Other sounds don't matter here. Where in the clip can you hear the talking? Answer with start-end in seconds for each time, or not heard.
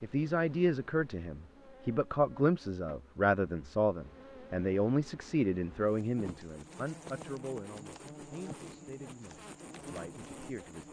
0.0-10.8.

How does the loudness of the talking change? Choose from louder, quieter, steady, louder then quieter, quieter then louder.
quieter.